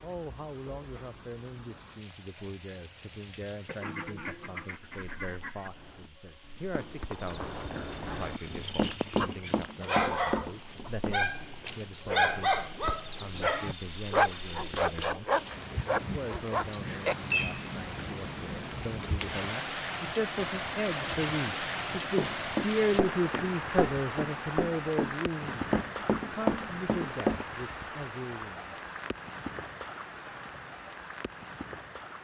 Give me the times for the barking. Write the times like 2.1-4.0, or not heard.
8.2-17.6.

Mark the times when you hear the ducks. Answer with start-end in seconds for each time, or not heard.
3.6-5.7.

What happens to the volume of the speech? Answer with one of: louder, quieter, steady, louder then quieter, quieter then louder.
louder.